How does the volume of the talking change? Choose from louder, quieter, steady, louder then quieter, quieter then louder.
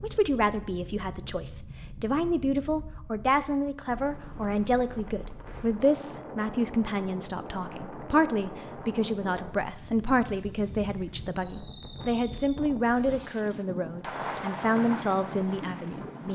steady.